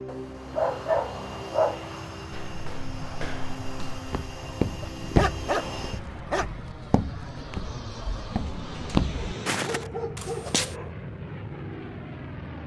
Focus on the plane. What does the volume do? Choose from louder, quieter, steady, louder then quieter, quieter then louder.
steady.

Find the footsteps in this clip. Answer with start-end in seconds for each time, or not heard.
2.3-10.8.